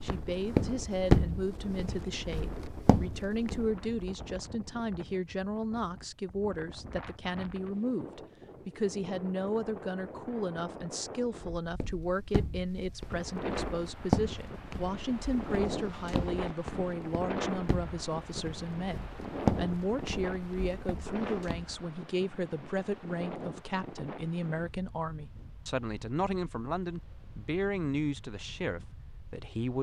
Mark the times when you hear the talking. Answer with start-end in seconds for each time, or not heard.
0.0-29.7.